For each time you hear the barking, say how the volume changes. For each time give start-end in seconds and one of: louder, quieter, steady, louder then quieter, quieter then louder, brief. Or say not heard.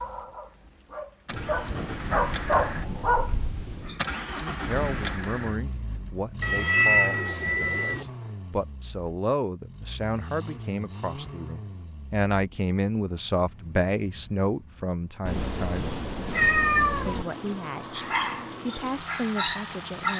0.0-4.0 louder
17.9-20.1 brief.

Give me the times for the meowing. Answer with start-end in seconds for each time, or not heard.
6.4-8.1, 15.2-17.2.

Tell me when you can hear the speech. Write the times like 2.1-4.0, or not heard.
4.4-15.9, 17.1-18.0, 18.6-20.1.